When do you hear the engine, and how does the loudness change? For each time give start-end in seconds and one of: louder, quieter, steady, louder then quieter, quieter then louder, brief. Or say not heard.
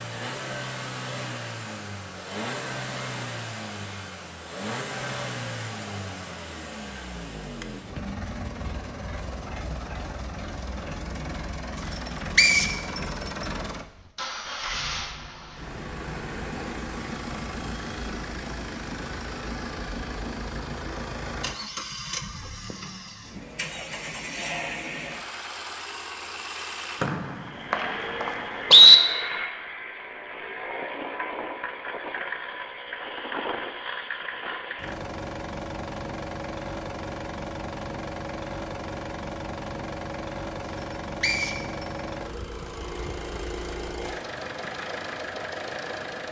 0.0-46.2 steady.